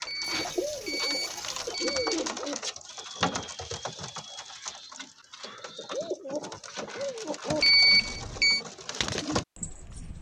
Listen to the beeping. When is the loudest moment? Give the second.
8 s.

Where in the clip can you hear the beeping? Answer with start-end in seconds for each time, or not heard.
0.1-2.2, 7.6-8.6.